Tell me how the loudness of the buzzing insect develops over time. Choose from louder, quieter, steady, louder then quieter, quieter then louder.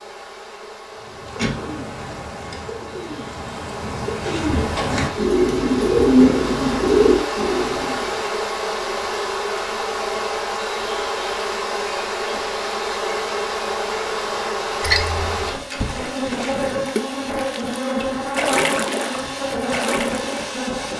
louder.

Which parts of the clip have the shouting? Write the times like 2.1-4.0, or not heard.
not heard.